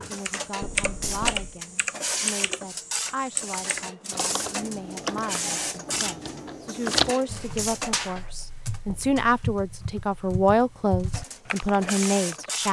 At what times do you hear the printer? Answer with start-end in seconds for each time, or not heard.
0.0-8.0, 11.1-12.6.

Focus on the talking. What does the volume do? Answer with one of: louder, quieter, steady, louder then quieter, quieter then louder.
louder.